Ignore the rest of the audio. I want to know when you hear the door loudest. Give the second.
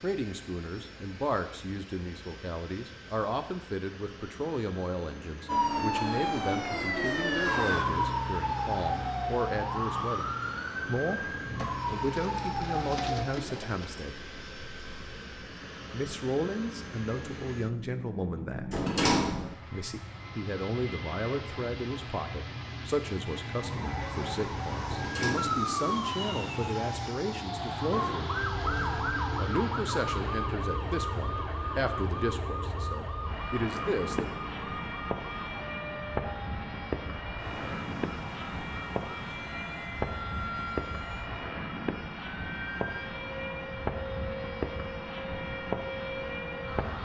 19 s.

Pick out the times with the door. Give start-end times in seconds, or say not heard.
18.7-19.6, 24.9-25.6.